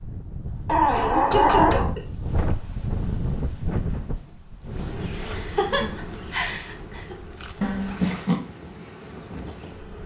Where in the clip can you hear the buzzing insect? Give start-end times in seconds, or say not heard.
4.7-10.0.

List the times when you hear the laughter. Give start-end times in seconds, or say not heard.
0.8-2.0, 5.3-7.2.